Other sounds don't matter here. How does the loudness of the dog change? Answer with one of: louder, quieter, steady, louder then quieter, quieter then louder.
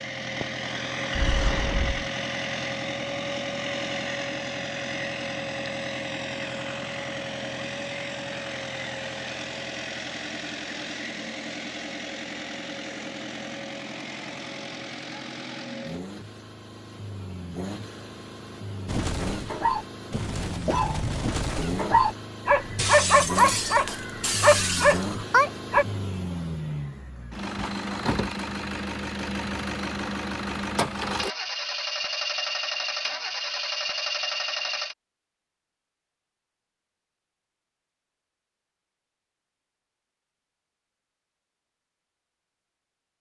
louder.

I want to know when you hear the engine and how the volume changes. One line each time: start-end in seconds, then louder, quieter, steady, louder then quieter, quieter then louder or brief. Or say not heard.
0.0-35.0 quieter then louder.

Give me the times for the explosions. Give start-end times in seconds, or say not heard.
1.1-2.0.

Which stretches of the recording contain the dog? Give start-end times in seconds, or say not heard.
18.9-25.9.